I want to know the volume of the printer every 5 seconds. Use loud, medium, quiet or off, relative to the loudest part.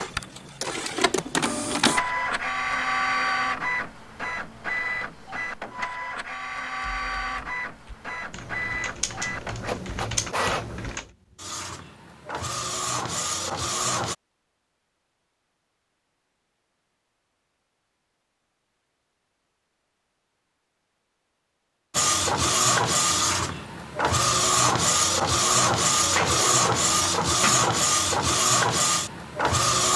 medium, medium, medium, off, loud, loud.